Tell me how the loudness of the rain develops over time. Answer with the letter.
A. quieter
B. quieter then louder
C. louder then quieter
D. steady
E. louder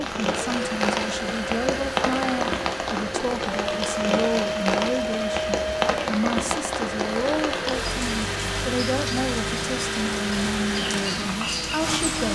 D.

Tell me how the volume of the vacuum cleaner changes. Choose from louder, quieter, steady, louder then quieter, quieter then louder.
steady.